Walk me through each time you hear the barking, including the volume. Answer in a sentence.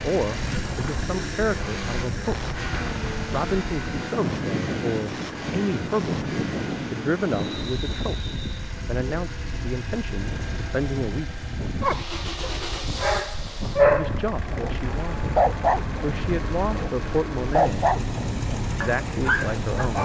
The barking can be heard from 11.8 to 20.0 s, getting louder then quieter.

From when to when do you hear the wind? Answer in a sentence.
You can hear the wind from 0.1 to 20.0 s.